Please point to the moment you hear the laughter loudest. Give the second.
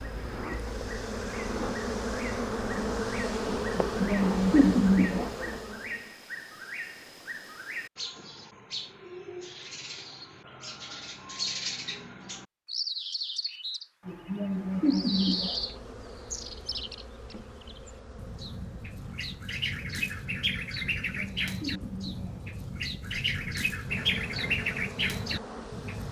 5 s.